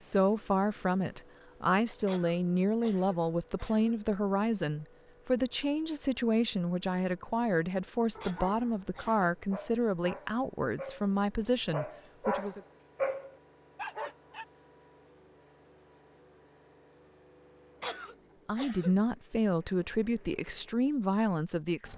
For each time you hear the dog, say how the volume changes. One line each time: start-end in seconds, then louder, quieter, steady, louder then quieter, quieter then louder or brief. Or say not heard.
8.2-14.4 louder.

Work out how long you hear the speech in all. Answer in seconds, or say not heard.
16 s.